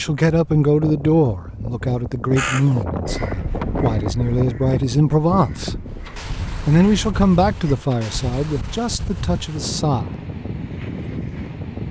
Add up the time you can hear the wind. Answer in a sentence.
The wind can be heard for 12 seconds in total.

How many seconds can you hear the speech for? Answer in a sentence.
The speech can be heard for 9 seconds in total.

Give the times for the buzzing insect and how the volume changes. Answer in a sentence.
The buzzing insect can't be heard in this clip.